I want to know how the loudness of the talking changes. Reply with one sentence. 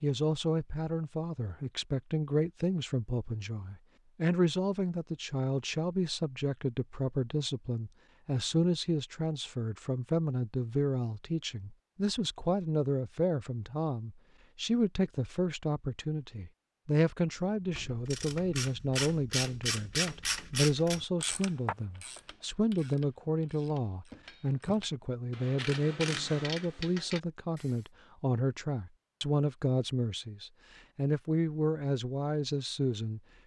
The volume of the talking stays about the same.